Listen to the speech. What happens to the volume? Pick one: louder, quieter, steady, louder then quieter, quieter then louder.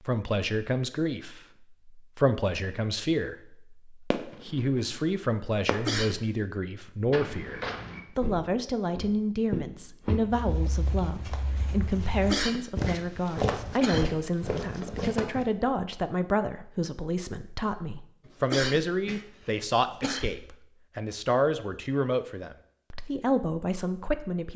steady.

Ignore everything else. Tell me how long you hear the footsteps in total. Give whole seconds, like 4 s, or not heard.
8 s.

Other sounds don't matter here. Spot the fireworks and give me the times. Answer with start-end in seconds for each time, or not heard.
4.1-5.9.